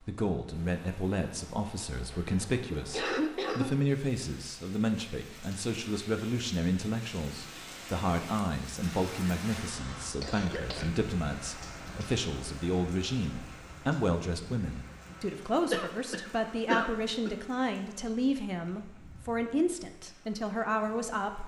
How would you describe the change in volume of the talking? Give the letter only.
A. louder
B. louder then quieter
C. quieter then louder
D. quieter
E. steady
E.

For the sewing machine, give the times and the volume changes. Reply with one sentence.
You can't hear the sewing machine here.